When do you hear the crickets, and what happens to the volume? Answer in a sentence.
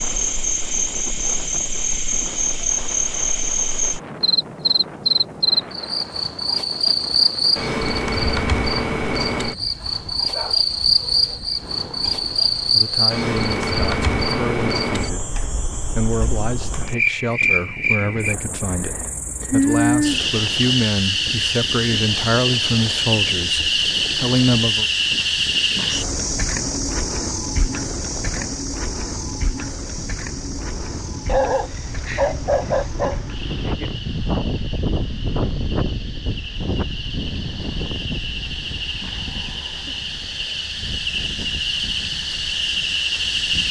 The crickets can be heard from 0.0 to 43.6 s, getting quieter.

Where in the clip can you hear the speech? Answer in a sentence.
The speech can be heard from 11.8 to 24.9 s.